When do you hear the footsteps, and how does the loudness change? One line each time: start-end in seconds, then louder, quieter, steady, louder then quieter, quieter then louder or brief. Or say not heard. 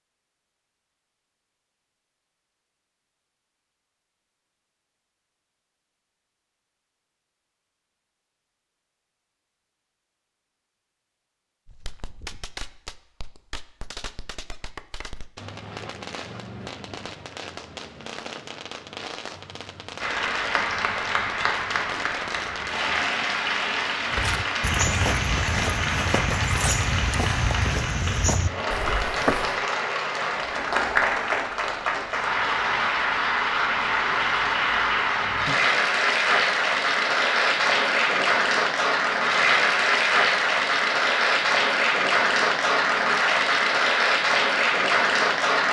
24.1-29.6 steady.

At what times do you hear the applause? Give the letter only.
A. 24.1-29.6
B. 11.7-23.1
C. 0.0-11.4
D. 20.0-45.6
D.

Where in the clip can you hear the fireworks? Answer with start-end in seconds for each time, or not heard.
11.7-23.1.